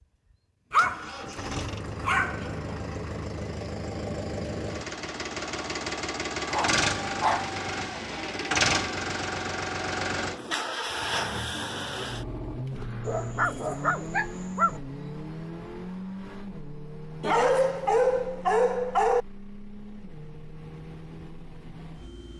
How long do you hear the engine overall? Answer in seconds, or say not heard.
22 s.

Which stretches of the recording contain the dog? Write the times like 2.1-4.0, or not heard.
0.7-2.8, 6.5-8.0, 13.1-14.8, 17.2-19.2.